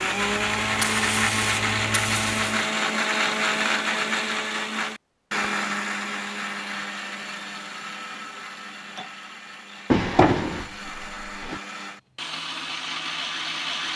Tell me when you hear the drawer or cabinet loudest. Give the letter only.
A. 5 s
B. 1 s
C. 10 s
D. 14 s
C.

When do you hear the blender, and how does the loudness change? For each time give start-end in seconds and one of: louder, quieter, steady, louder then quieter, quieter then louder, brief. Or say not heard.
0.0-13.9 quieter then louder.